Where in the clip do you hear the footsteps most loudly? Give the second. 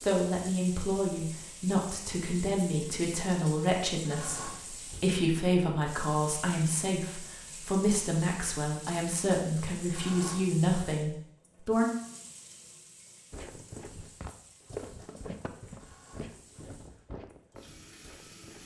15 s.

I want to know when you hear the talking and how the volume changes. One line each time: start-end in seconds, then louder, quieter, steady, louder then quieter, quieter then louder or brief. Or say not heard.
0.0-11.9 steady.